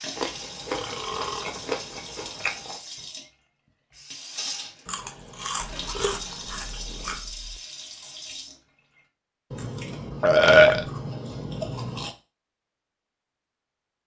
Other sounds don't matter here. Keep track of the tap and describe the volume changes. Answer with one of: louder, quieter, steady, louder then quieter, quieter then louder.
steady.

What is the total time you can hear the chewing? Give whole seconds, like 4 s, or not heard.
8 s.